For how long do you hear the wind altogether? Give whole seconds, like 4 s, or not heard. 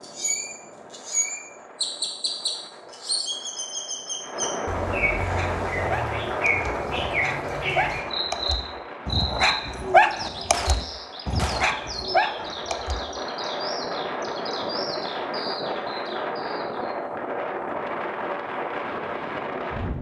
20 s.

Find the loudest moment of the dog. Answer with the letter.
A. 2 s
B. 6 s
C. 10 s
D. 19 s
C.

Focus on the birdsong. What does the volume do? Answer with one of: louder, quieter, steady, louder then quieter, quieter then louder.
quieter.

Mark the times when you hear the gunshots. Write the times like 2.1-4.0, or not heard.
10.5-11.8.